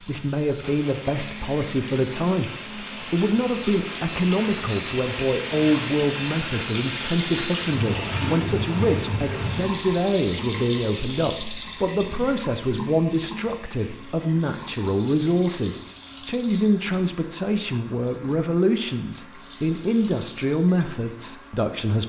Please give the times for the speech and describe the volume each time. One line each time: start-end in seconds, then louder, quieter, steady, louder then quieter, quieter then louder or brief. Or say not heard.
0.0-22.0 steady.